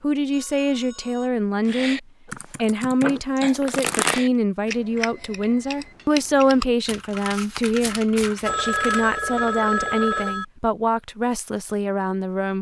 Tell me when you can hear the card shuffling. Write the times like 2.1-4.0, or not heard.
2.4-4.2, 6.8-8.8.